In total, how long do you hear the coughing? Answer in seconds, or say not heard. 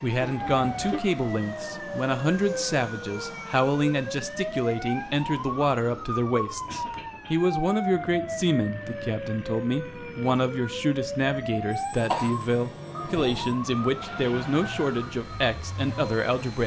3 s.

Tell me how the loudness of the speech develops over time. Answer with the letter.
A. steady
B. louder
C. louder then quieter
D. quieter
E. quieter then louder
A.